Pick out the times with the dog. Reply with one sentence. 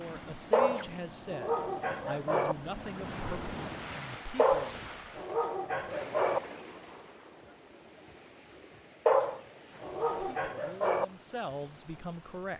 The dog can be heard from 0.5 to 2.5 s, from 4.3 to 6.4 s and from 9.1 to 11.1 s.